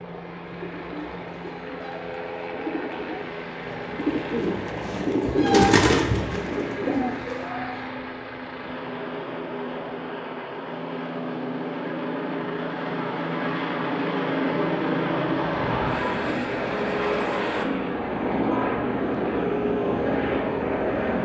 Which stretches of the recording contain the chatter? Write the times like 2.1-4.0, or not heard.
not heard.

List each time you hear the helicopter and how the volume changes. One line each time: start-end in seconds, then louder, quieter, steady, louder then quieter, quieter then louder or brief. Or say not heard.
0.0-21.2 louder.